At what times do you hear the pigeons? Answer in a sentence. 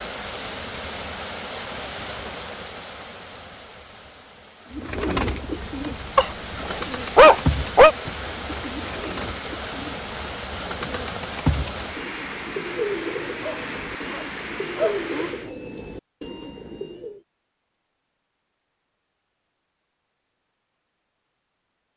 The pigeons can be heard from 4.8 to 17.2 s.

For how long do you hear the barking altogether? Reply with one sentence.
The barking can be heard for 4 seconds in total.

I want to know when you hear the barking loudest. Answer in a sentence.
The volume of the barking peaks at 7 seconds.